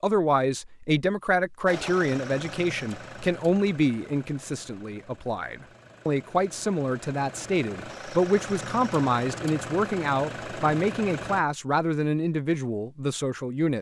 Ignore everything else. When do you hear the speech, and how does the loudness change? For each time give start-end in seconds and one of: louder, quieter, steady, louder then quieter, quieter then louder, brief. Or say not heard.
0.0-13.7 steady.